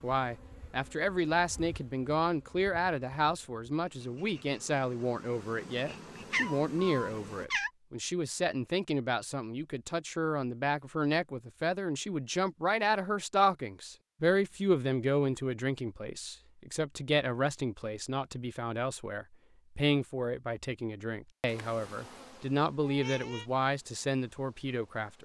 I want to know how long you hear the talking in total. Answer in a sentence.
The talking can be heard for 25 seconds in total.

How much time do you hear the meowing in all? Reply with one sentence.
You can hear the meowing for 2 seconds altogether.